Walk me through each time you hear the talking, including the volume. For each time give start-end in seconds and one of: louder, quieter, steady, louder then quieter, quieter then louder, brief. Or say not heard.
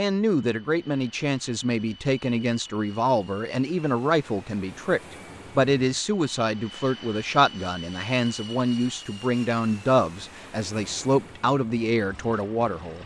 0.0-13.0 steady.